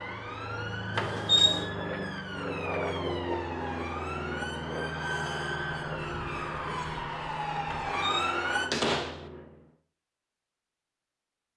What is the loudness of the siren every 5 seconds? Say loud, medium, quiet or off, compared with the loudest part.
medium, loud, off.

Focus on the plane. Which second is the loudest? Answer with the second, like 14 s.
3 s.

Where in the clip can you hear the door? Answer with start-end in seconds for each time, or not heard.
0.9-1.6, 7.7-9.2.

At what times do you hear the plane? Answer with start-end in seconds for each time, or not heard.
0.0-9.8.